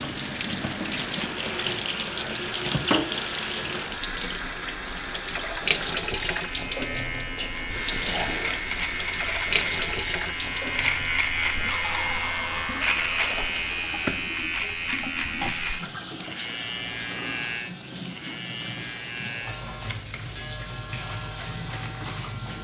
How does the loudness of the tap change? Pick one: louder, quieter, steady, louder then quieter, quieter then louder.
quieter.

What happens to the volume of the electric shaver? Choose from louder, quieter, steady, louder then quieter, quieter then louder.
louder then quieter.